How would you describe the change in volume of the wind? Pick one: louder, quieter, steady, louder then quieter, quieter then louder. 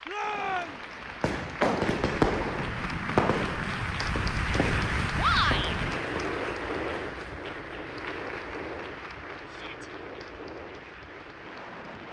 quieter.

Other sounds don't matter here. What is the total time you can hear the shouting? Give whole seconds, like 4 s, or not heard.
2 s.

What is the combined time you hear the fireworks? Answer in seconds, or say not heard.
6 s.